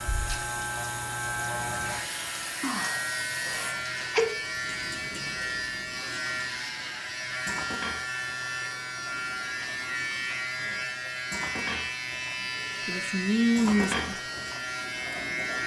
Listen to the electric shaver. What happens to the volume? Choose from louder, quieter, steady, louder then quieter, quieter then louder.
steady.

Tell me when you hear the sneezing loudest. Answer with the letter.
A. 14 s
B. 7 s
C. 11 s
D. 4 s
D.